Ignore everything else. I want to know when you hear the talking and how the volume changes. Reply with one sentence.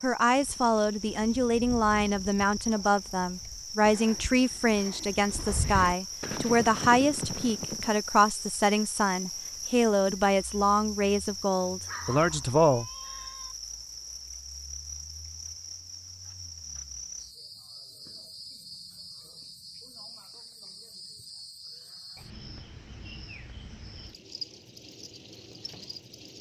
The talking can be heard from 0.0 to 12.8 s, at a steady volume.